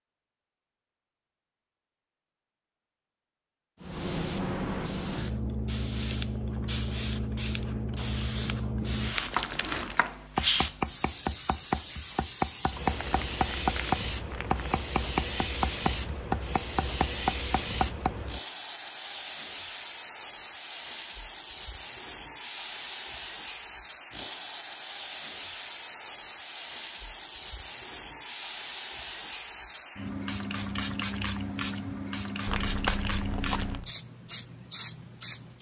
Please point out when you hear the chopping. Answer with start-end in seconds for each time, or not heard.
9.3-18.1.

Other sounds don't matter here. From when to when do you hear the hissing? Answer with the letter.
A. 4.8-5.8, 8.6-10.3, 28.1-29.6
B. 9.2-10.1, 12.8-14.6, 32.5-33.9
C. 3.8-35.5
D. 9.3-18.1
C.